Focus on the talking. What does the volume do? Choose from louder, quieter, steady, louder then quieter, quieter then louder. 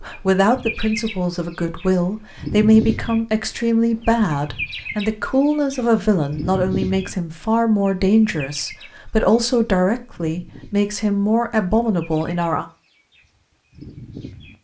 steady.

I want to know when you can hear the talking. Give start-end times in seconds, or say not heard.
0.0-12.7.